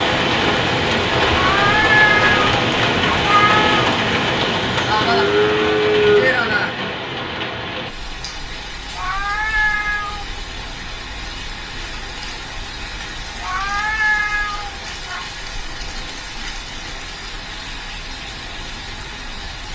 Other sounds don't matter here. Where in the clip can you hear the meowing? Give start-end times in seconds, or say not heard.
1.3-3.9, 8.9-10.4, 13.4-15.2.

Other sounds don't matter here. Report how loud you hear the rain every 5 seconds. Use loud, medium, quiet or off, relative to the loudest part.
loud, medium, quiet, quiet.